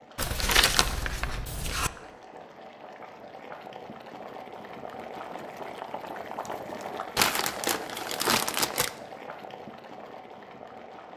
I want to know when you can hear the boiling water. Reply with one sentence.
You can hear the boiling water from 0.0 to 11.1 s.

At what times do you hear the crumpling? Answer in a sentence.
The crumpling can be heard from 0.1 to 1.9 s and from 7.2 to 8.9 s.